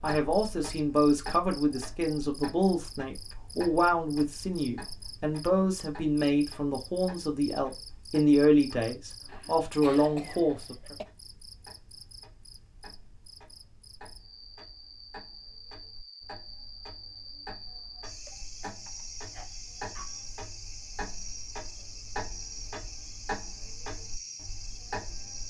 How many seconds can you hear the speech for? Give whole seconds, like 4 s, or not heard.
11 s.